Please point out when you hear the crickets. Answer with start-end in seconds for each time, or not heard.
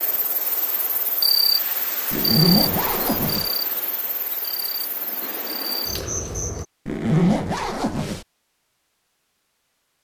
0.0-6.7.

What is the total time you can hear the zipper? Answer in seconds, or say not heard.
3 s.